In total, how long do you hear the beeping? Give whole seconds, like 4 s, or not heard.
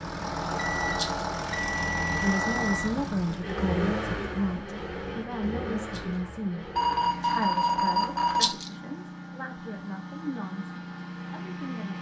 4 s.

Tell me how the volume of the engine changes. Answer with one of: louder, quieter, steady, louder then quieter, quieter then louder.
quieter.